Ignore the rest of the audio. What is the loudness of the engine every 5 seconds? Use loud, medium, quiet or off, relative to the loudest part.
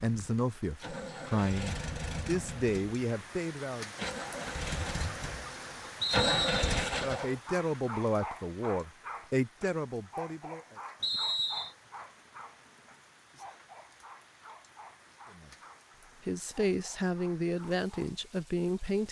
medium, loud, off, off.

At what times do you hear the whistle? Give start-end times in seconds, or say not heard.
6.0-6.7, 11.0-11.8.